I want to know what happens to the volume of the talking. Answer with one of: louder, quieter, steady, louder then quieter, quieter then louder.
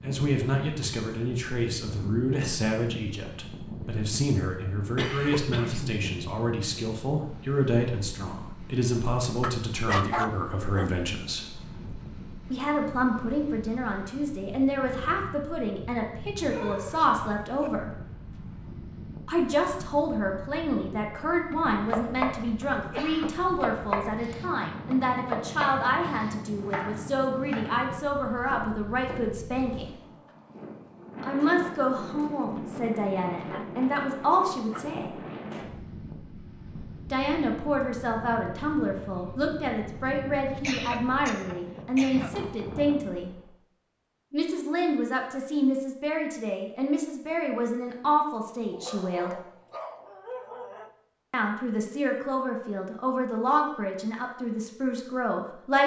steady.